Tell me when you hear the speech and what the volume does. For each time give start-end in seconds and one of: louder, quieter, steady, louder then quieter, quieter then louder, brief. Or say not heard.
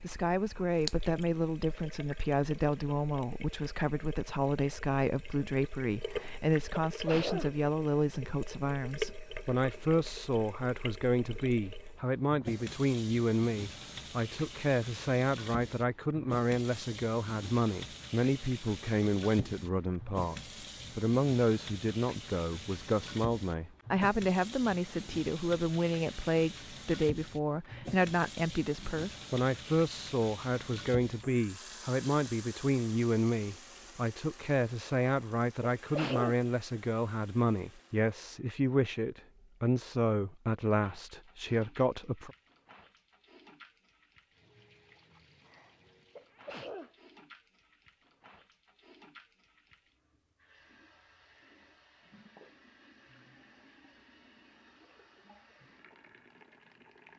0.0-42.4 steady.